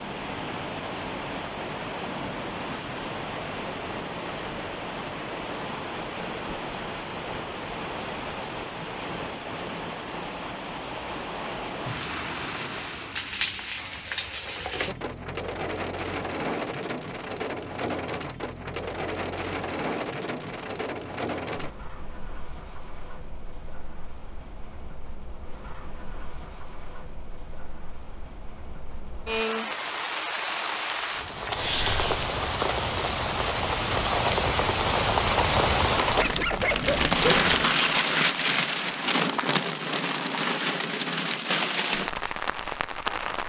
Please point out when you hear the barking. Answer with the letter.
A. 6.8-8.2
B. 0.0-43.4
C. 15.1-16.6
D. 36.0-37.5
D.